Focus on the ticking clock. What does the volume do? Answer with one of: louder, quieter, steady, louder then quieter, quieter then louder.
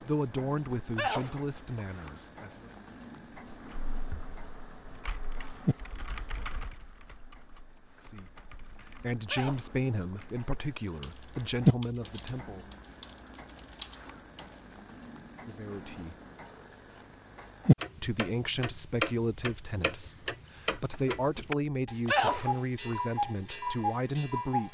louder.